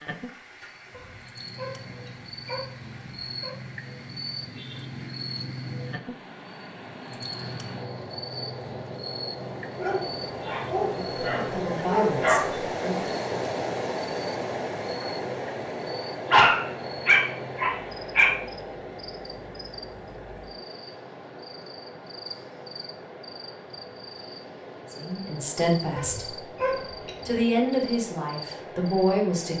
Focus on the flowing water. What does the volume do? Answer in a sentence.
The loudness of the flowing water goes up, then down.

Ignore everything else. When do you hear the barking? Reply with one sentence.
The barking can be heard from 0.9 to 3.5 s, from 9.8 to 12.4 s, from 16.3 to 18.3 s and from 25.9 to 27.4 s.